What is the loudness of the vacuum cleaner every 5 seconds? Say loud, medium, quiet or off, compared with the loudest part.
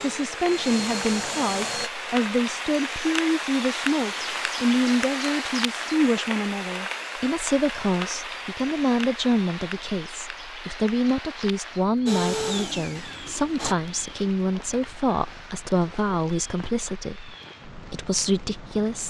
loud, off, loud, off.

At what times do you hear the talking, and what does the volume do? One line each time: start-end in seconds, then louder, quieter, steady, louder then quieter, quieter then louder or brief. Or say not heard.
0.0-19.0 steady.